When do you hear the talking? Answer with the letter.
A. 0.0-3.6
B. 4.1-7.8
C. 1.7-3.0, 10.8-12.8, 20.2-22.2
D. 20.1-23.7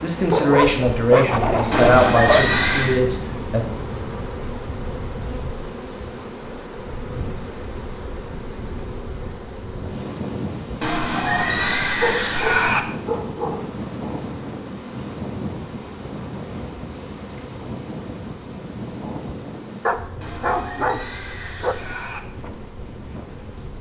A.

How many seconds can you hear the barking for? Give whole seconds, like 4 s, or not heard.
6 s.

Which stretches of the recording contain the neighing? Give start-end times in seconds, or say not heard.
1.7-3.0, 10.8-12.8, 20.2-22.2.